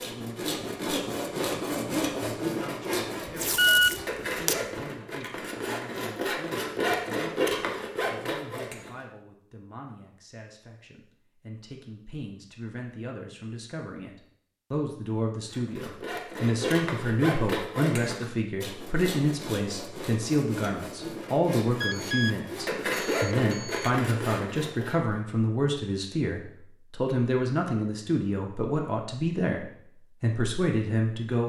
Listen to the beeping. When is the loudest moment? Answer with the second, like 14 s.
4 s.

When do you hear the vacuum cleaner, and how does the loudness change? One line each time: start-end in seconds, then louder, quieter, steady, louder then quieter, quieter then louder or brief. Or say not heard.
not heard.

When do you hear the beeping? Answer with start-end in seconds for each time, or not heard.
3.5-4.0, 21.8-23.9.